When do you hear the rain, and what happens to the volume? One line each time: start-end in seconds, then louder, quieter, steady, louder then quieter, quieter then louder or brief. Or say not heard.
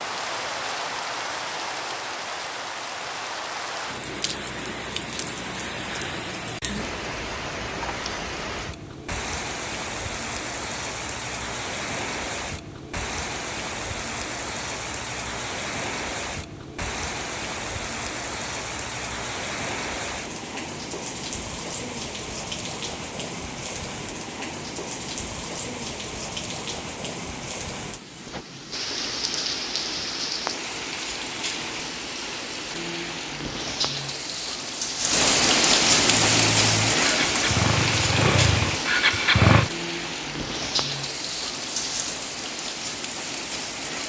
0.0-44.0 louder.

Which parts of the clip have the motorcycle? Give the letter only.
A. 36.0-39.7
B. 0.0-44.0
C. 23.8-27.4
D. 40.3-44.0
A.